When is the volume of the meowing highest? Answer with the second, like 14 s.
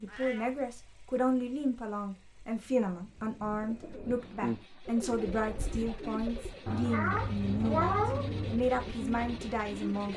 8 s.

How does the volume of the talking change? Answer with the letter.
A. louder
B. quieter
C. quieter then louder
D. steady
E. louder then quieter
D.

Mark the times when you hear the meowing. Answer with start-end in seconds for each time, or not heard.
0.1-0.6, 6.7-8.5.